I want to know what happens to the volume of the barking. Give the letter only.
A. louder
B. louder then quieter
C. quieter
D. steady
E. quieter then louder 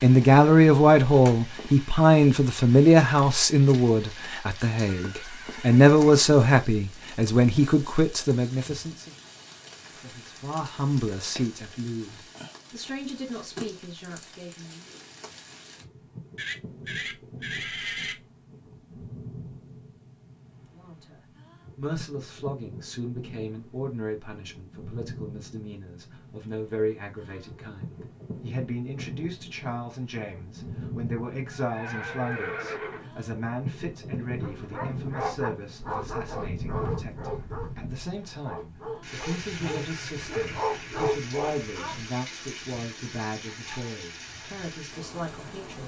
E.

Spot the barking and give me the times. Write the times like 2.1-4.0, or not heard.
34.4-42.1.